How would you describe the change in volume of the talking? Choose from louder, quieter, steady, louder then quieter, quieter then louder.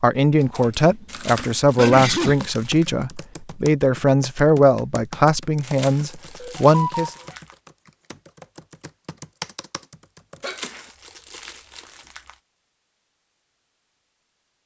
steady.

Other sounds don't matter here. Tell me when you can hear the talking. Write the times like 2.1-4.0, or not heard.
0.0-7.1.